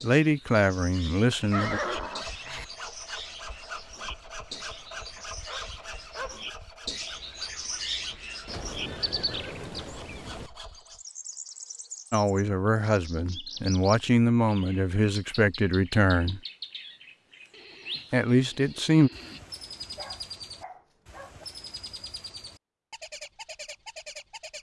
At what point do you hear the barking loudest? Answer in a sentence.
The loudest moment of the barking is at 6 seconds.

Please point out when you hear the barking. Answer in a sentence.
The barking can be heard from 5.2 to 6.5 s and from 19.9 to 21.4 s.